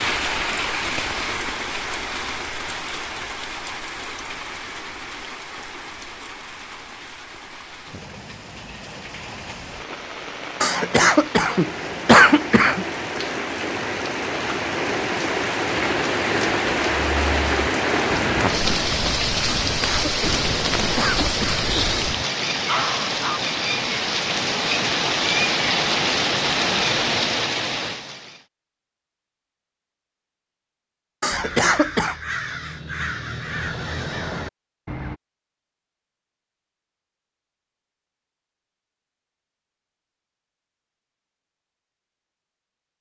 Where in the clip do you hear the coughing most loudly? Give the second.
12 s.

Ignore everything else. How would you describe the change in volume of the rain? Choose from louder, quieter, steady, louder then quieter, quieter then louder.
quieter then louder.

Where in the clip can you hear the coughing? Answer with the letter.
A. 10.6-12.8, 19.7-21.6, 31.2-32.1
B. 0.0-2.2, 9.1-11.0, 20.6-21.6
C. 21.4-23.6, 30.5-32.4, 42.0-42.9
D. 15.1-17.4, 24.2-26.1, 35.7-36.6
A.